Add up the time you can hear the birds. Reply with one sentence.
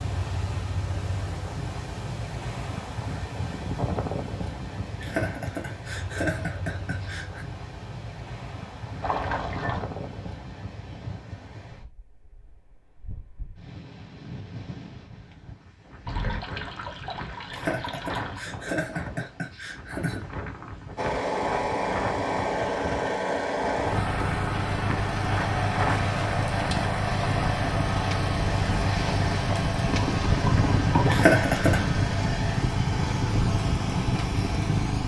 You can't hear the birds here.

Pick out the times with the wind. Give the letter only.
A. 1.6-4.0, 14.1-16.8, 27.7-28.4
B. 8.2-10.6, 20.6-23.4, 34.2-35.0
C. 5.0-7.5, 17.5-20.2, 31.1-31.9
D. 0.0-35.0
D.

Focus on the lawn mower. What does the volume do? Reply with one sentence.
The loudness of the lawn mower stays about the same.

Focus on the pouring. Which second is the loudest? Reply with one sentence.
The volume of the pouring peaks at 31 seconds.